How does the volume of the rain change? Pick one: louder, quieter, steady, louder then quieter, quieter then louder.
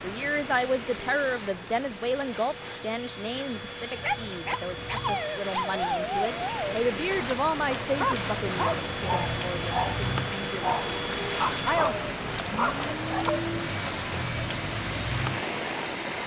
louder.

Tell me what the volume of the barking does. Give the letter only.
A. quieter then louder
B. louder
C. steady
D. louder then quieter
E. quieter
C.